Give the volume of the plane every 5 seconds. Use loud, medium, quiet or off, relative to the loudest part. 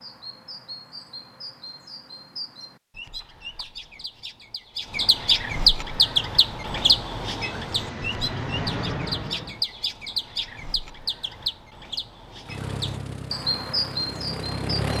off, loud, loud.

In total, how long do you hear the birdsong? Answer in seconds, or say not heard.
15 s.